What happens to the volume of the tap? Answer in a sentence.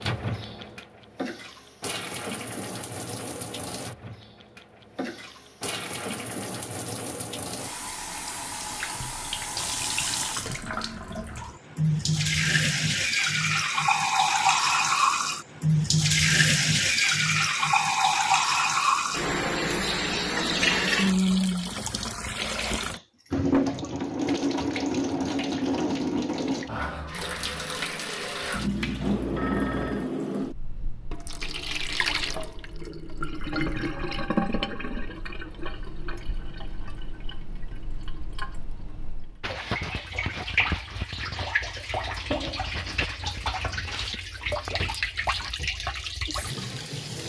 The loudness of the tap goes up, then down.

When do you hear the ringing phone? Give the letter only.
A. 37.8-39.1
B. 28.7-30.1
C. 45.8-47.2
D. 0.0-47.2
B.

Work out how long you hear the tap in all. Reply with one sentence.
The tap can be heard for 47 seconds in total.